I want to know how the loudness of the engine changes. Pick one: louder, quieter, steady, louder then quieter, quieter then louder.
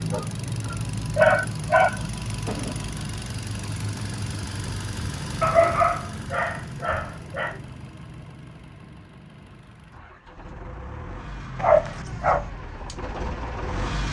quieter then louder.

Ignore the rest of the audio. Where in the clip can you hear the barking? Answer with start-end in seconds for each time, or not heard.
0.1-2.0, 5.4-7.5, 11.6-12.5.